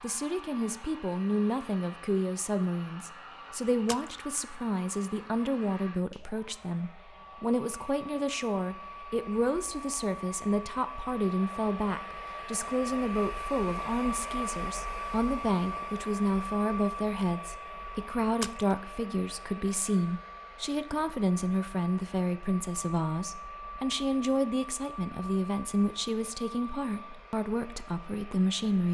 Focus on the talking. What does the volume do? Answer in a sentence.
The loudness of the talking stays about the same.